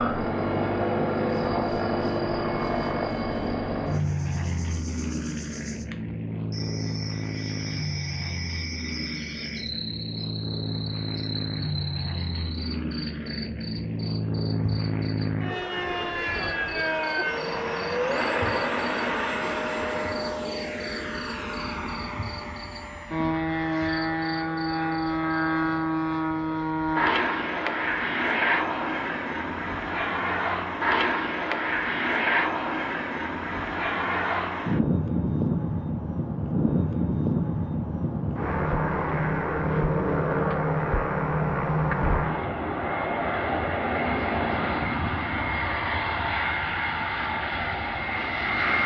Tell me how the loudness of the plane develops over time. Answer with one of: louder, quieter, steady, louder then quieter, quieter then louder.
steady.